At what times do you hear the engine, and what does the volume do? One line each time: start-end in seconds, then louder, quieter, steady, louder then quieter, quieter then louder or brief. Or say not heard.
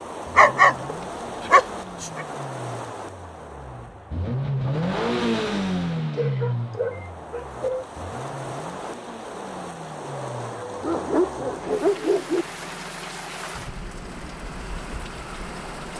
0.2-15.9 louder then quieter.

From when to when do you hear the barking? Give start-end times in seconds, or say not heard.
0.3-0.8, 1.4-2.2, 6.1-7.8, 10.8-12.4.